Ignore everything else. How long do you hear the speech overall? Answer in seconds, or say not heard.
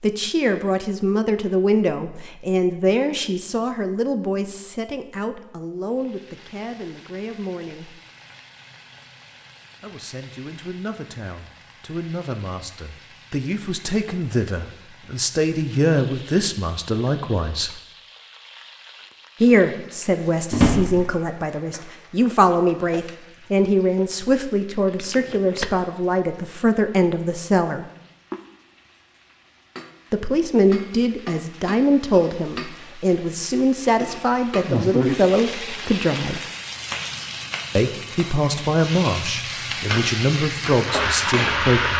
35 s.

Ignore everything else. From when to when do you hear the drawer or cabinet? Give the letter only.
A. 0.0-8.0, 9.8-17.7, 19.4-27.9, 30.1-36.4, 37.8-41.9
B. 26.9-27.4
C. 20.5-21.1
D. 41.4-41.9
C.